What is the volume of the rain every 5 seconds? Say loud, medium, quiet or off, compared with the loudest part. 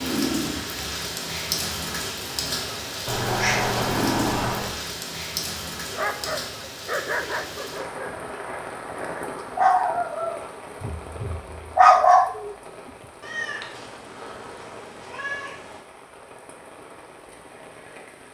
loud, medium, quiet, quiet.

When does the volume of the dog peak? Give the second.
12 s.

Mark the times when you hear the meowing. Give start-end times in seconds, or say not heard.
3.0-4.8, 13.2-15.8.